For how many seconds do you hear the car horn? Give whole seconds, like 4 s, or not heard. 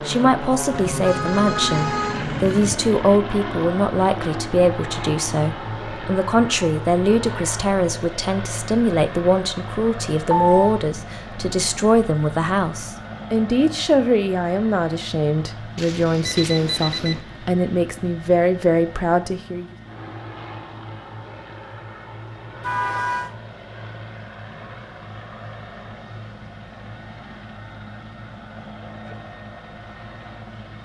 3 s.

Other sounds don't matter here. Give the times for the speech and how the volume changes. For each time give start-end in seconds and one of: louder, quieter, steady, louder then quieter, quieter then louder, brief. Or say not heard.
0.1-19.6 steady.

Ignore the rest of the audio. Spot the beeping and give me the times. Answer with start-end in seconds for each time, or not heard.
10.3-10.8, 15.8-17.2.